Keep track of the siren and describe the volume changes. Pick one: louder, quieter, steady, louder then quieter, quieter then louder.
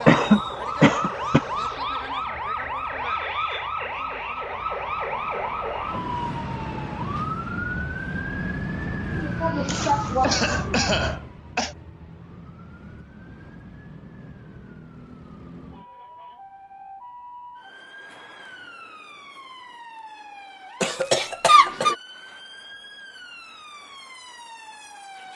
quieter.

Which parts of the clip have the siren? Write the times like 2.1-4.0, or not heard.
0.0-25.3.